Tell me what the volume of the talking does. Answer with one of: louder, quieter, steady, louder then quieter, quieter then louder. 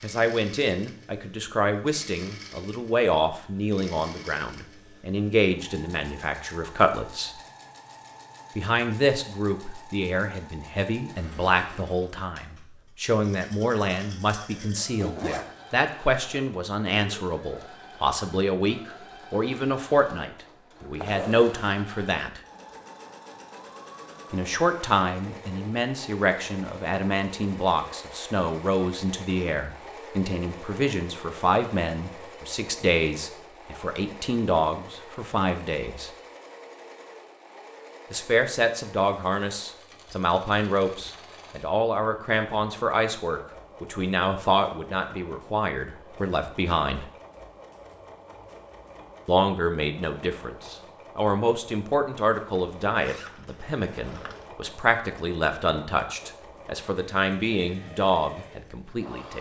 steady.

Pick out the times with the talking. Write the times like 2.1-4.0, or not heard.
0.0-7.3, 8.6-22.4, 24.3-36.1, 38.1-47.1, 49.2-59.3.